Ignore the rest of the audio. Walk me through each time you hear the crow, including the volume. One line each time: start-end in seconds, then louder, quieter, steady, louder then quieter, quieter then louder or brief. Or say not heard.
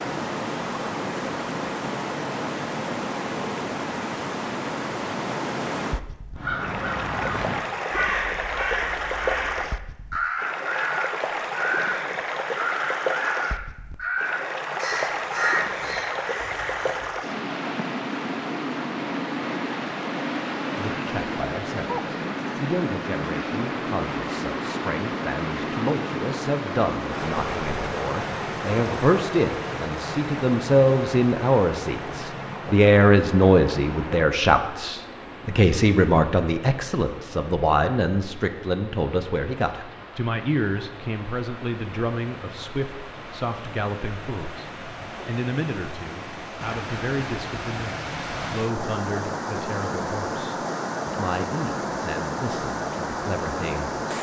6.3-17.3 steady.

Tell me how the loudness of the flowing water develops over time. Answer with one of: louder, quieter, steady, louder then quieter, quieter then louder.
quieter then louder.